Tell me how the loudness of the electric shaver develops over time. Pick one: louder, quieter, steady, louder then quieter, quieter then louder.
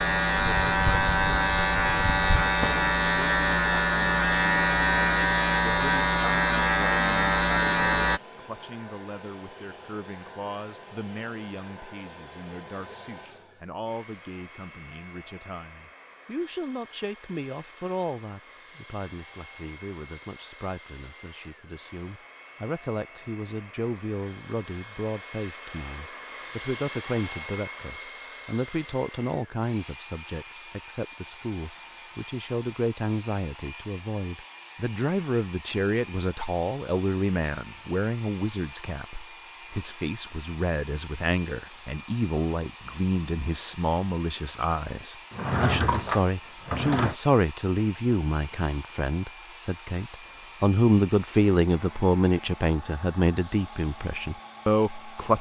steady.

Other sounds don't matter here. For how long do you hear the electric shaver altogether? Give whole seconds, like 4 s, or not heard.
8 s.